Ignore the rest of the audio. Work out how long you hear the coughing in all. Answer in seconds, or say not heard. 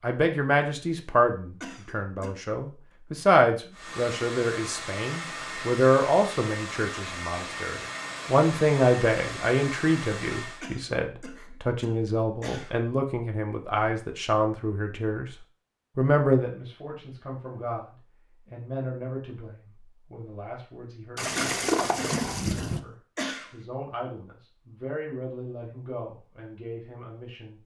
5 s.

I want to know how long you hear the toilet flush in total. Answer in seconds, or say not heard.
2 s.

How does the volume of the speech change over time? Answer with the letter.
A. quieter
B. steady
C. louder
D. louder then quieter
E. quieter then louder
A.